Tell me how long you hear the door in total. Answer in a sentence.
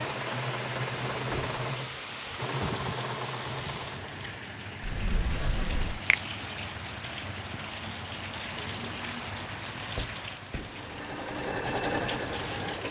The door can be heard for 3 seconds in total.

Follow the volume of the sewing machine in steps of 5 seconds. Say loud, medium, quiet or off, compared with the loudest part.
loud, off, loud.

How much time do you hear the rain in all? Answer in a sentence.
The rain can be heard for 13 seconds in total.